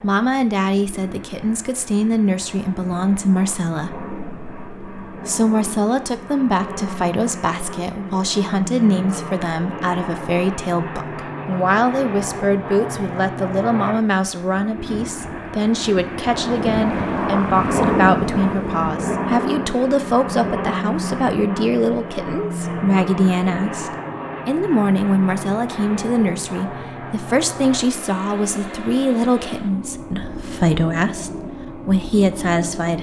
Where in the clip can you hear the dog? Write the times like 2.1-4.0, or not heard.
not heard.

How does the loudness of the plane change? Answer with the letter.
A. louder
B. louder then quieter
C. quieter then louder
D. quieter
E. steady
B.